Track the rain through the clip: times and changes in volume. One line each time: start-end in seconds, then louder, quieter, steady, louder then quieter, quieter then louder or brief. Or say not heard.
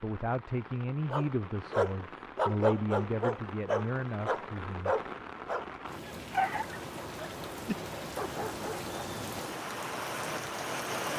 0.0-11.1 louder.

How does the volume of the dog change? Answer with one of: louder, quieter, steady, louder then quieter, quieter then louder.
quieter.